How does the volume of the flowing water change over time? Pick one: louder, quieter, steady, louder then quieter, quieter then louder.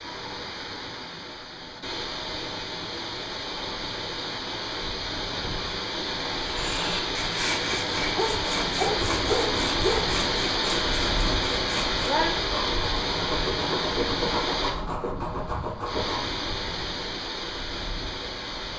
louder then quieter.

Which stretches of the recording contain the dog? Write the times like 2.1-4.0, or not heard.
7.7-10.1.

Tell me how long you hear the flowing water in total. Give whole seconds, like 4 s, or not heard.
19 s.